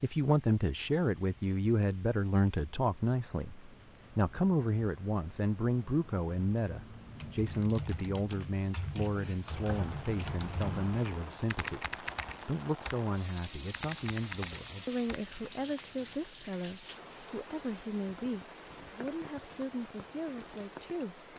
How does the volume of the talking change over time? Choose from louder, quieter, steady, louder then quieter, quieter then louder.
quieter.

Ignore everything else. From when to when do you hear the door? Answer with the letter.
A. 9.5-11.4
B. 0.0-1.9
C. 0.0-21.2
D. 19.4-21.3
A.